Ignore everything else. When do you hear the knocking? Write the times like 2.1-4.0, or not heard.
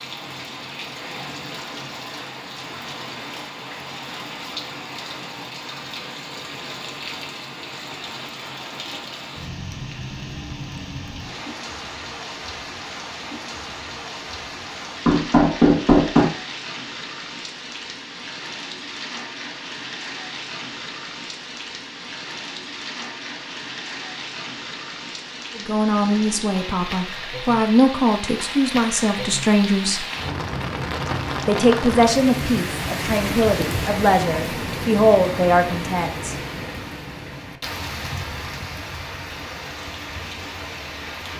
15.1-16.2.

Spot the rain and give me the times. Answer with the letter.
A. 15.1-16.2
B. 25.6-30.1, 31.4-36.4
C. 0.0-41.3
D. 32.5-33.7
C.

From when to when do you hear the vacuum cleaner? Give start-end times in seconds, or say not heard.
not heard.